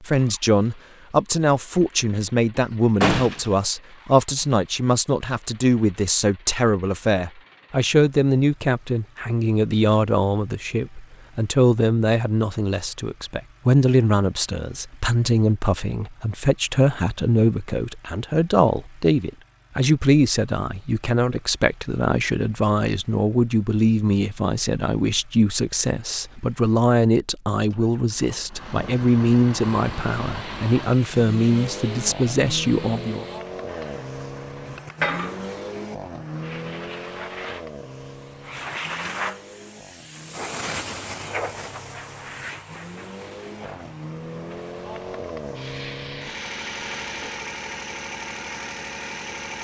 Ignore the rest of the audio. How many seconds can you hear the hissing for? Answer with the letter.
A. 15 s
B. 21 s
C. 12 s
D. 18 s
D.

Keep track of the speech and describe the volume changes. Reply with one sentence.
The loudness of the speech stays about the same.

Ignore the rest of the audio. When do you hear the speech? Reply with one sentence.
You can hear the speech from 0.0 to 33.2 s.